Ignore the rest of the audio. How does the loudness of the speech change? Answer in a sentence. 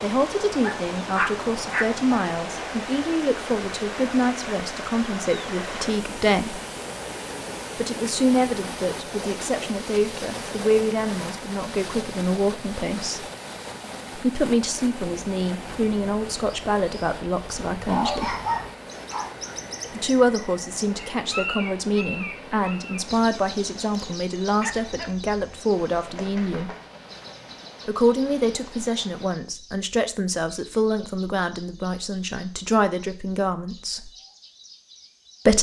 The loudness of the speech stays about the same.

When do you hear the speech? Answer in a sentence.
You can hear the speech from 0.0 to 6.6 s, from 7.8 to 13.2 s, from 14.2 to 18.4 s, from 19.9 to 26.7 s and from 27.9 to 34.1 s.